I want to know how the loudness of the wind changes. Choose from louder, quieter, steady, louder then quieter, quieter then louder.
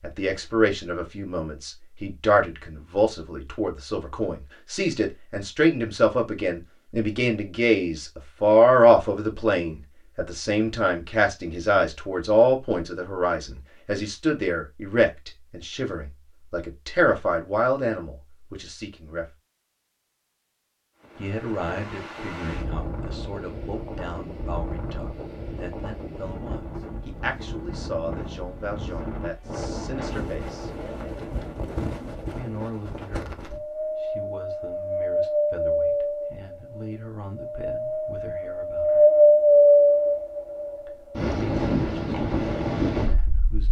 louder.